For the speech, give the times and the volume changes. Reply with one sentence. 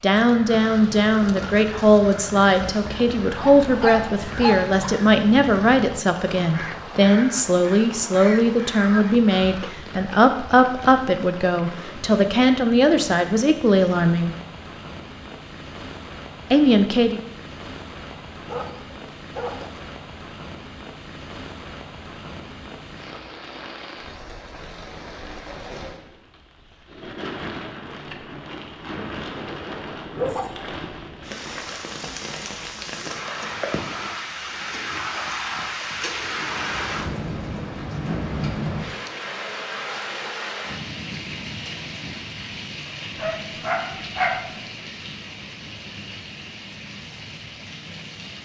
You can hear the speech from 0.0 to 14.3 s, at a steady volume; and briefly from 16.5 to 17.2 s.